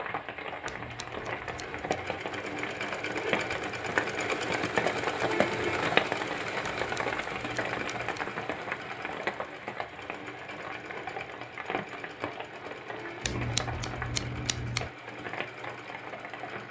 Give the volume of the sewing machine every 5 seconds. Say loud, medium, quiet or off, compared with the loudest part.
loud, loud, medium, medium.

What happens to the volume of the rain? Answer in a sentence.
The volume of the rain goes up, then down.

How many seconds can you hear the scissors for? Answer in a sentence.
The scissors can be heard for 5 seconds in total.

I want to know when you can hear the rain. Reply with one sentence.
The rain can be heard from 0.0 to 16.6 s.